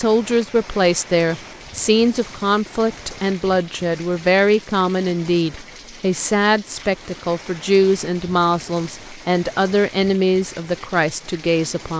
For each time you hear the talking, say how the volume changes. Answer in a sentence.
The talking can be heard from 0.0 to 11.9 s, at a steady volume.